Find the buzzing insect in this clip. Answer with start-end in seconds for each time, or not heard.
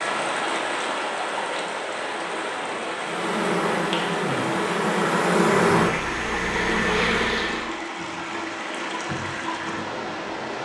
3.0-7.7.